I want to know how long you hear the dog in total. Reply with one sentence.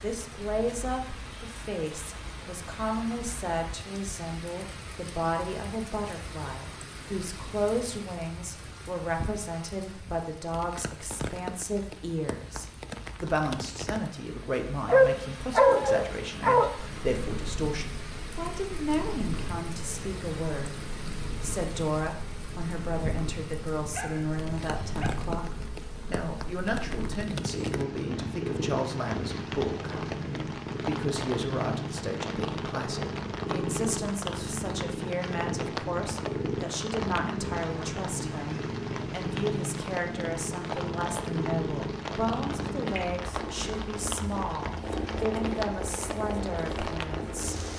You can hear the dog for 3 seconds altogether.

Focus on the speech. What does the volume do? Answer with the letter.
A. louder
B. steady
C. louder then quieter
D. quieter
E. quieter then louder
B.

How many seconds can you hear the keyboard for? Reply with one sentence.
The keyboard can't be heard in this clip.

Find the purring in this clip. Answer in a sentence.
The purring can be heard from 16.8 to 47.7 s.